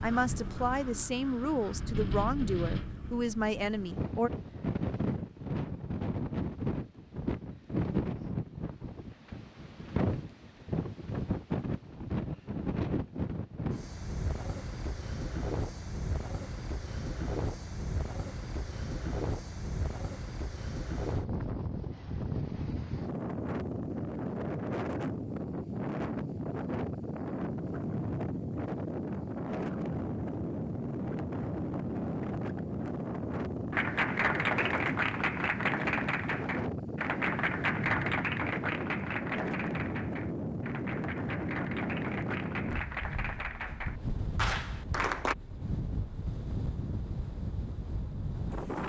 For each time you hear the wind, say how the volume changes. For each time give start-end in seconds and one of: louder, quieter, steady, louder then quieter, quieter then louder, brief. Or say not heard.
0.0-48.8 steady.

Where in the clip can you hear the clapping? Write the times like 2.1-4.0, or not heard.
33.7-45.4.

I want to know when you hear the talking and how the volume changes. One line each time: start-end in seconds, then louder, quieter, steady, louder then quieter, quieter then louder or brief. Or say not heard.
0.0-4.3 steady.